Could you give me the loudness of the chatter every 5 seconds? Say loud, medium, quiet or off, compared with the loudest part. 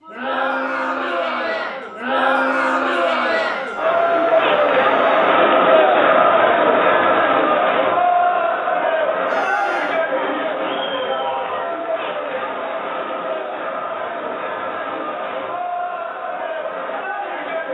loud, loud, medium, medium.